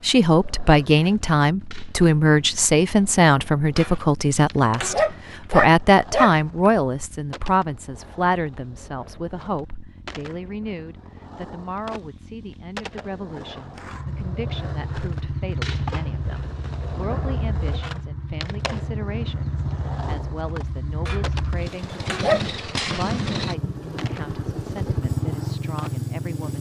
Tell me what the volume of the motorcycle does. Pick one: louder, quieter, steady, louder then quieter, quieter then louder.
louder.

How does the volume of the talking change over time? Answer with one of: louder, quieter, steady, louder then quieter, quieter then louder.
quieter.